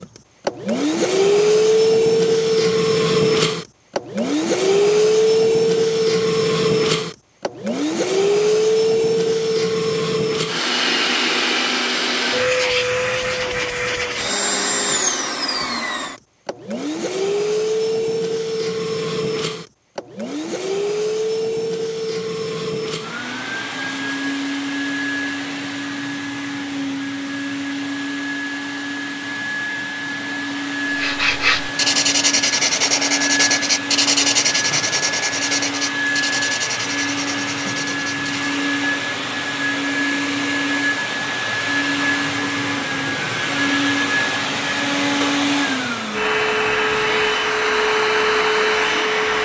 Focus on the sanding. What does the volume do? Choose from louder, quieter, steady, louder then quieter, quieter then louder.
quieter.